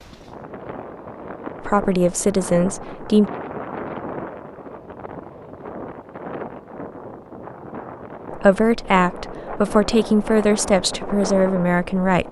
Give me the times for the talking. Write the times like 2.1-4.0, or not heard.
1.6-3.3, 8.3-12.2.